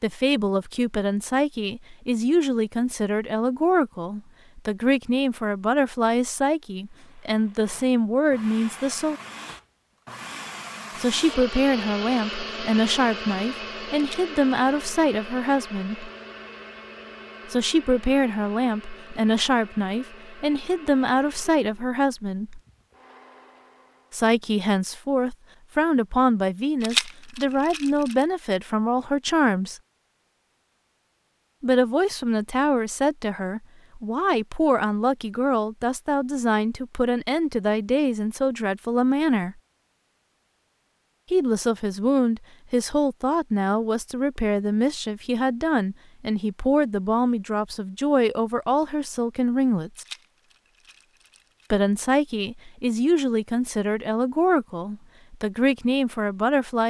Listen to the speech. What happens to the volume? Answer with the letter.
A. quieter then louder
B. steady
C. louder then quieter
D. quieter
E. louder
B.